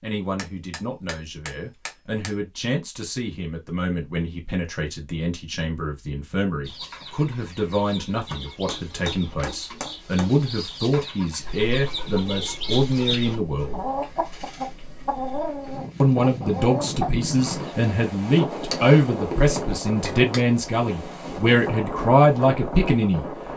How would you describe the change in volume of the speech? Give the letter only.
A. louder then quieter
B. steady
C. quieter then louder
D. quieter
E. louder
E.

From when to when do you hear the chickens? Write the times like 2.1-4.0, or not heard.
6.6-17.8.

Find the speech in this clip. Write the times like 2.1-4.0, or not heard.
0.0-13.8, 16.0-23.2.